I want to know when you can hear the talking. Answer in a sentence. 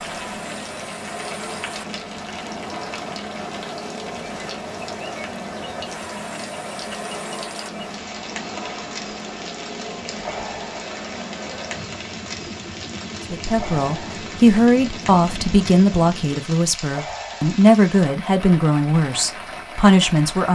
You can hear the talking from 13.3 to 20.5 s.